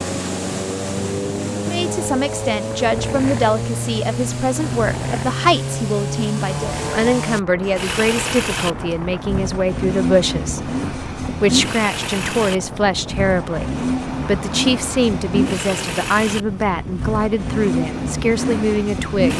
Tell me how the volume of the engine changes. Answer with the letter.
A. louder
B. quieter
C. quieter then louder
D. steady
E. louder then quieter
D.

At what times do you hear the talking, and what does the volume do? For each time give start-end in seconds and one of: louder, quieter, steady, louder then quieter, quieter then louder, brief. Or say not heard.
1.6-19.3 steady.